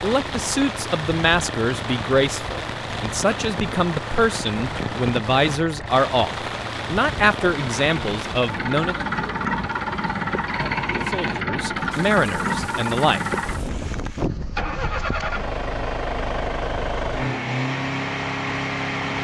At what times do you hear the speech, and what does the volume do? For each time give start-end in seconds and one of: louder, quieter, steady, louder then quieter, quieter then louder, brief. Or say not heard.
0.0-8.9 steady
11.1-13.2 brief.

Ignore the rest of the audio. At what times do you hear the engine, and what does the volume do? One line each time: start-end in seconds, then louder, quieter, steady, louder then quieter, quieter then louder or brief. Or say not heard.
0.0-19.1 louder.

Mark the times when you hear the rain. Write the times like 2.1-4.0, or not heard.
0.0-14.3.